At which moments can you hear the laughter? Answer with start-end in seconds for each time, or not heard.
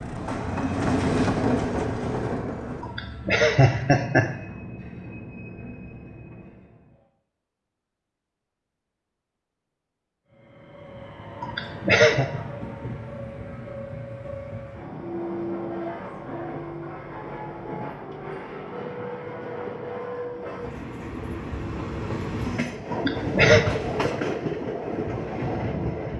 2.8-4.3, 11.4-12.2, 22.9-23.6.